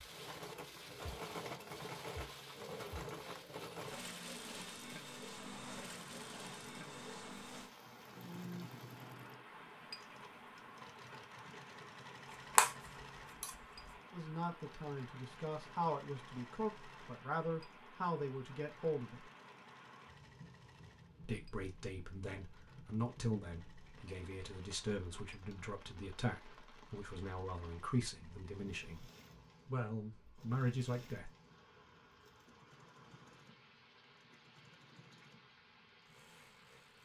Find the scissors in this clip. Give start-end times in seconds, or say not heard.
12.6-13.9.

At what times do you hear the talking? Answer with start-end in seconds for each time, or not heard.
14.1-19.2, 21.2-29.1, 29.6-31.3.